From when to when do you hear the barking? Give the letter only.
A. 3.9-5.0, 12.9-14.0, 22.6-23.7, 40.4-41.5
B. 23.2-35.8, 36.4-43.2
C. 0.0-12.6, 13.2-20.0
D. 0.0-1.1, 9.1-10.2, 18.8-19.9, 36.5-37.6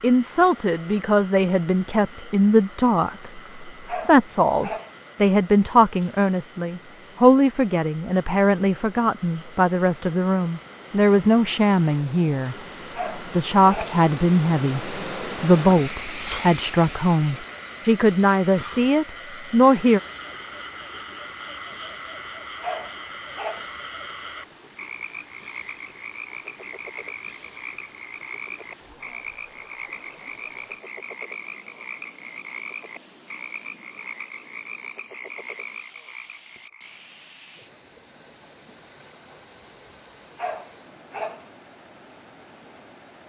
A.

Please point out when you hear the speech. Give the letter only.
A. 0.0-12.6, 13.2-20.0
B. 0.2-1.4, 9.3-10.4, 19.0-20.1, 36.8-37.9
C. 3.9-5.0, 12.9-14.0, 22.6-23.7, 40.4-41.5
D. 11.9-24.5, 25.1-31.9
A.